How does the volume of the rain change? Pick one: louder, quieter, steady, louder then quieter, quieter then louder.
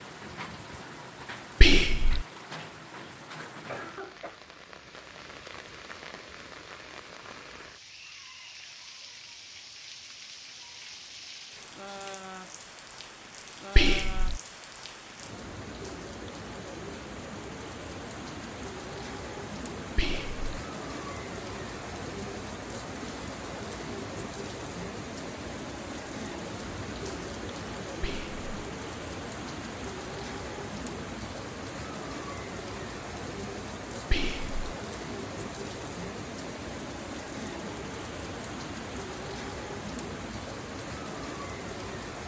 louder.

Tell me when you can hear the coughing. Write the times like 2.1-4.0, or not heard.
3.6-4.4.